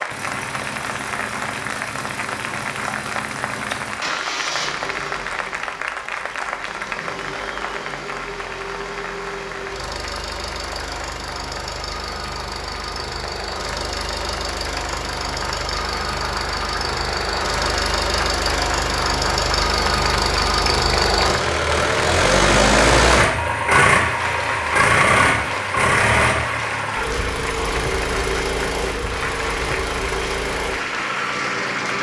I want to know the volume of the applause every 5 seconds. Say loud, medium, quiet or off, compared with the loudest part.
loud, loud, medium, loud, loud, loud, loud.